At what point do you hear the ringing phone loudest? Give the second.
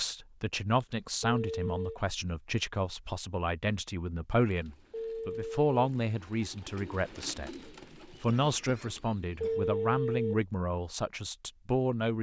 10 s.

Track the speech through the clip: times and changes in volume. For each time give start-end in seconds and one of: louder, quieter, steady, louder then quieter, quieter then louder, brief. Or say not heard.
0.0-12.1 steady.